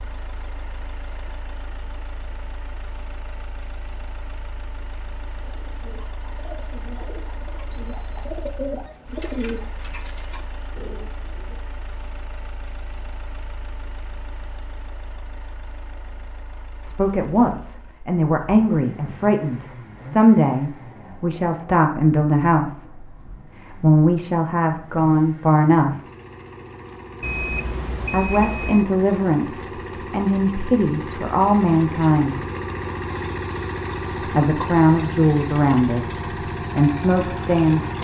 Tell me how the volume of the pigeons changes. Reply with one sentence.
The volume of the pigeons goes up, then down.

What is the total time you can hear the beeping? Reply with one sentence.
You can hear the beeping for 2 seconds altogether.